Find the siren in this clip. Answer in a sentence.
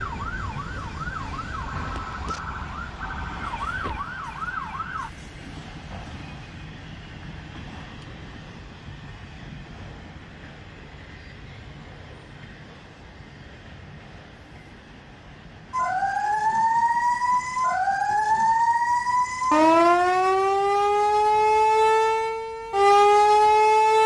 The siren can be heard from 0.0 to 5.1 s and from 15.7 to 24.0 s.